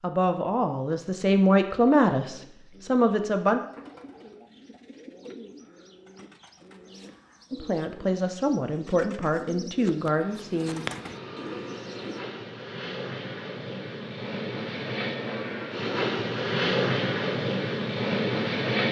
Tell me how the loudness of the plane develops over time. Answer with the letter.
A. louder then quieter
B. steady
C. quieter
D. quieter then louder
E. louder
E.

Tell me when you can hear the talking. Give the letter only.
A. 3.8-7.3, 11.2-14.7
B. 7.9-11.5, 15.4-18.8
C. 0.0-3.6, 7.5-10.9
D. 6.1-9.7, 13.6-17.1
C.